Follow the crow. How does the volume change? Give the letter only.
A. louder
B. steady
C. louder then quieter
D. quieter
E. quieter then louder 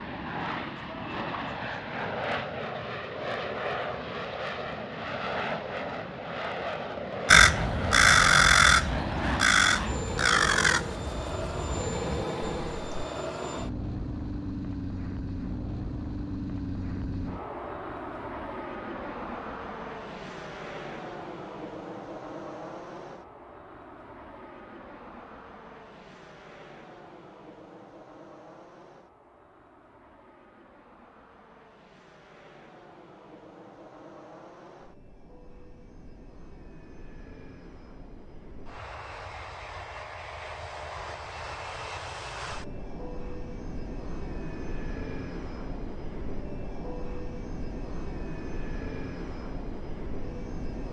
D.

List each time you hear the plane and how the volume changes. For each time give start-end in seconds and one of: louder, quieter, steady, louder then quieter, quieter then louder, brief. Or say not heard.
0.0-50.8 quieter then louder.